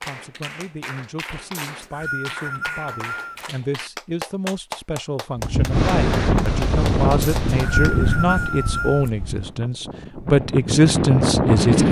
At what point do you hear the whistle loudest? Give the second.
8 s.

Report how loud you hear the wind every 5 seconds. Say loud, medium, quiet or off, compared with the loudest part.
off, loud, loud.